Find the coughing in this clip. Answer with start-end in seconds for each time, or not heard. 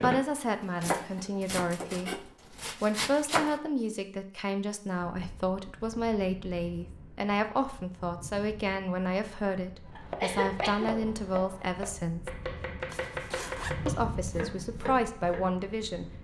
9.9-11.1.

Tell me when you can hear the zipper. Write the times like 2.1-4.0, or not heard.
12.8-13.8.